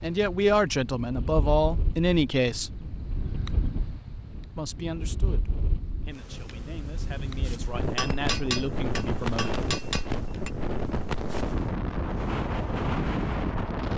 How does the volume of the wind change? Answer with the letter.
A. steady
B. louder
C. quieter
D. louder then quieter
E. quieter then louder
B.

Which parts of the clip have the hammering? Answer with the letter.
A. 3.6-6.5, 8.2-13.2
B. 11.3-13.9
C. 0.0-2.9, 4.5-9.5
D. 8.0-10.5
D.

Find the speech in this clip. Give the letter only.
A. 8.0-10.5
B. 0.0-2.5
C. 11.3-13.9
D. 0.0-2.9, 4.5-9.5
D.